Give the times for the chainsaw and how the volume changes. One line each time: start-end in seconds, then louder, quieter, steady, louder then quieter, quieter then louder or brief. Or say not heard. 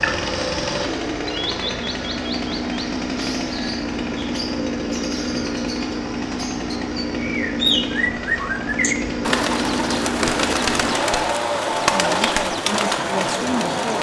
0.0-13.9 steady.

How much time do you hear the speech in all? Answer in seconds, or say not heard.
2 s.